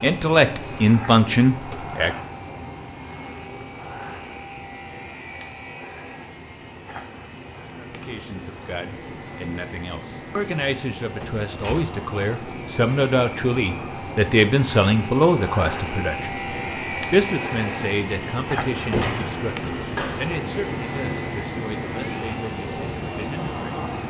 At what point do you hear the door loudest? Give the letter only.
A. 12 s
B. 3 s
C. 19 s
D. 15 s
C.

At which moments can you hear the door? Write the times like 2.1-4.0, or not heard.
1.5-1.9, 11.2-11.9, 18.7-20.3.